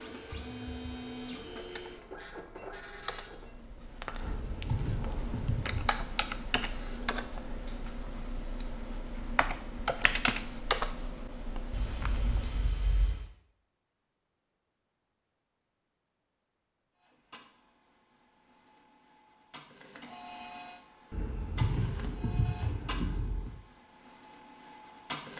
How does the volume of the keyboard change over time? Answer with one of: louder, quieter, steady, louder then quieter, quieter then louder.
louder.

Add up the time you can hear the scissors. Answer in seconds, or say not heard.
6 s.